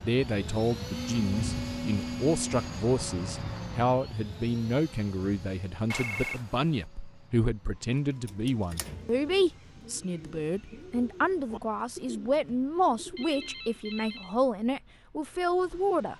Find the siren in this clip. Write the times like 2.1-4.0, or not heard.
not heard.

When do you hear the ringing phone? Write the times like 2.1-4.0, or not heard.
0.9-2.7, 5.9-6.5, 13.2-14.3.